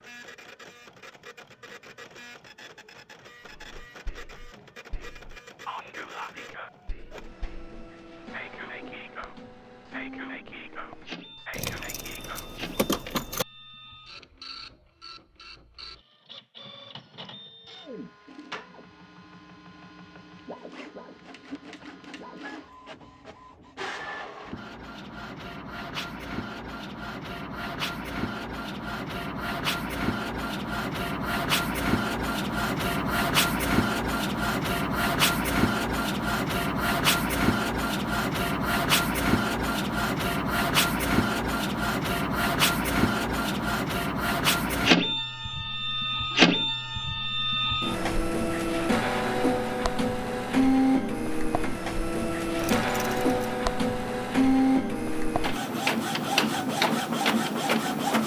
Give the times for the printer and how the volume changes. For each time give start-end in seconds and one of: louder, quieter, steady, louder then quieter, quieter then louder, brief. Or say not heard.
0.0-58.2 louder.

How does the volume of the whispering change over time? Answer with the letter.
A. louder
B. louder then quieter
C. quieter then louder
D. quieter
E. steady
A.